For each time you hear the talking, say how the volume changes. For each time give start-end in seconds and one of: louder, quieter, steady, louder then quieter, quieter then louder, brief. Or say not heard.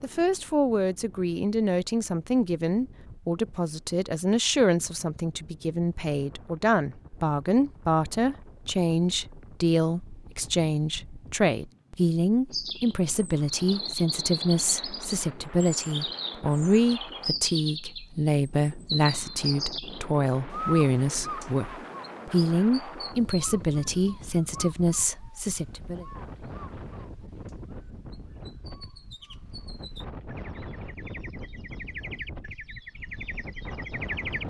0.0-26.1 steady.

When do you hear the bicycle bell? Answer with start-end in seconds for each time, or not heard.
not heard.